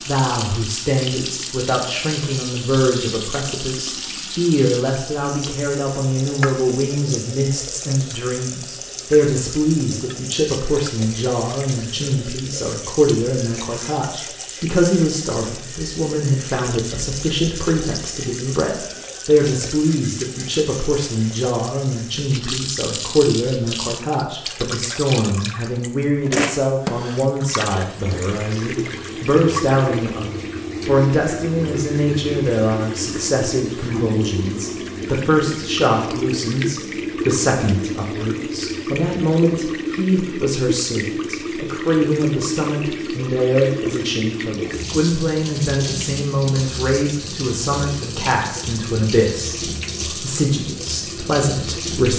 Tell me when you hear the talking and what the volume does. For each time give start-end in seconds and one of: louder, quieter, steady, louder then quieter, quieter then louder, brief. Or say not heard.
0.0-52.1 steady.